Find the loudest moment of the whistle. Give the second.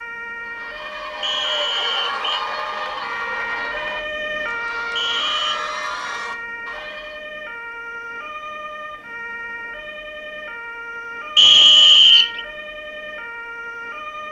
12 s.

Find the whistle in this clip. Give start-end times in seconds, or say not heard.
1.2-2.5, 5.0-5.6, 11.3-12.4.